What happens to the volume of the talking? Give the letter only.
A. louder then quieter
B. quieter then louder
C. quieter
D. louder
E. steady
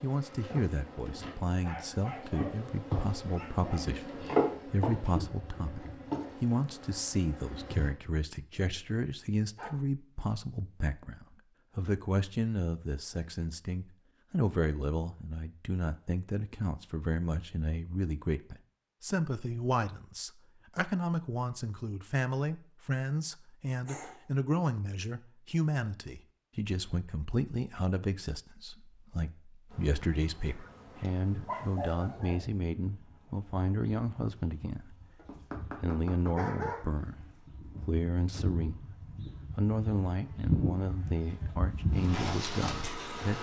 E.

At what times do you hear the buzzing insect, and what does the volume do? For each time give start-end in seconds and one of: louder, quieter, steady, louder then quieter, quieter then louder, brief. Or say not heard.
0.0-7.9 louder then quieter
29.6-43.3 quieter then louder.